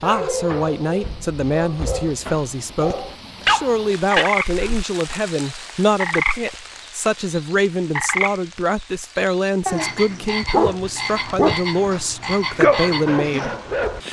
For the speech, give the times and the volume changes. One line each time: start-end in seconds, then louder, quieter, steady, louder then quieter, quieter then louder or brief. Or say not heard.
0.0-13.6 steady.